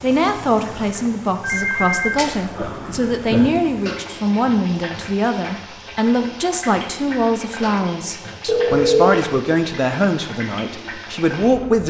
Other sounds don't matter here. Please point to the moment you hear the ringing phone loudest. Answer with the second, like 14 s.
9 s.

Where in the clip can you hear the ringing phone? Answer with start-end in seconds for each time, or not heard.
1.4-3.5, 8.4-9.2.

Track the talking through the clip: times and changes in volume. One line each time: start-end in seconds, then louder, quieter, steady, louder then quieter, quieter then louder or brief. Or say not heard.
0.0-11.8 steady.